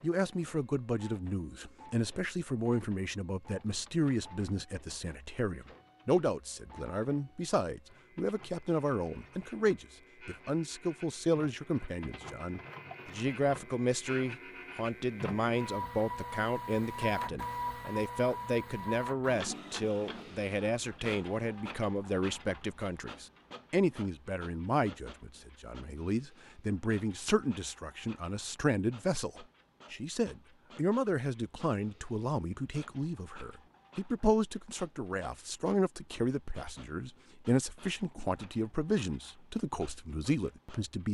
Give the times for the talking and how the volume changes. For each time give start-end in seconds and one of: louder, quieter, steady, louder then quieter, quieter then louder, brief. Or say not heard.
0.0-41.0 steady.